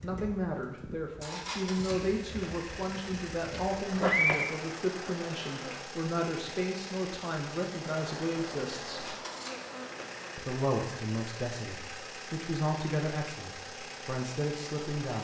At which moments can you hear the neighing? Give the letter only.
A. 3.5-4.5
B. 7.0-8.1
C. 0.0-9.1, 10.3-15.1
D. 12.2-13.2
A.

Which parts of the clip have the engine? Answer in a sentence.
The engine can be heard from 0.0 to 15.1 s.